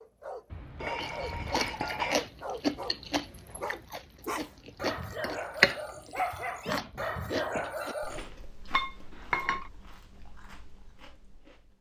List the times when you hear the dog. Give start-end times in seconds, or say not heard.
0.0-8.2.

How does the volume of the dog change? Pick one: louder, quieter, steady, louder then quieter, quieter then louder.
louder.